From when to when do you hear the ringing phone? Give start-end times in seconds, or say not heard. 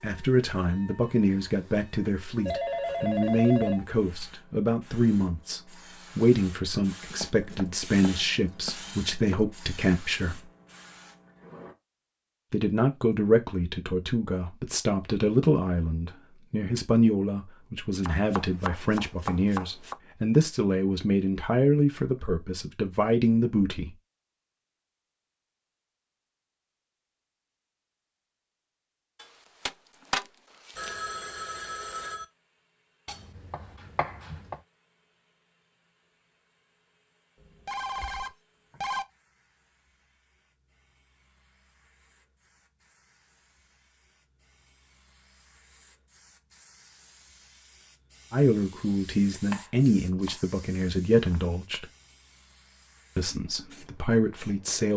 2.5-4.3, 30.8-32.2, 37.4-39.0.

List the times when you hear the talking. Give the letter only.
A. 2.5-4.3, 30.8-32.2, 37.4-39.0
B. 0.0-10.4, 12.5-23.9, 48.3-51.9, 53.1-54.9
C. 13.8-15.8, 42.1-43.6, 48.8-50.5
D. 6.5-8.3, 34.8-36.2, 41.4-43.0
B.